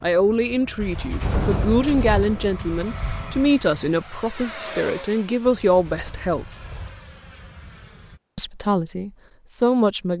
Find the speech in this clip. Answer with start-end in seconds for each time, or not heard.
0.0-6.5, 8.3-10.1.